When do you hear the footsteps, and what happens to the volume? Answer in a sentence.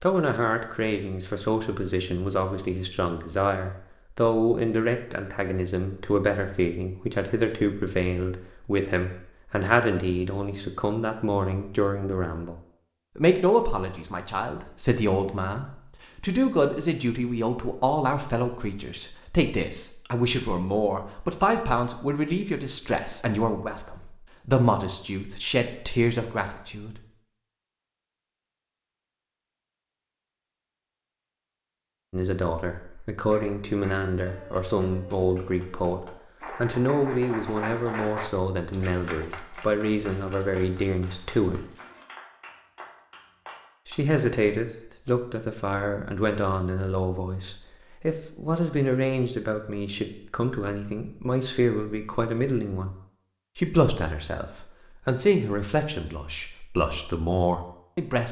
The footsteps can't be heard in this clip.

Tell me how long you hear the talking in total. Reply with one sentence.
The talking can be heard for 50 seconds in total.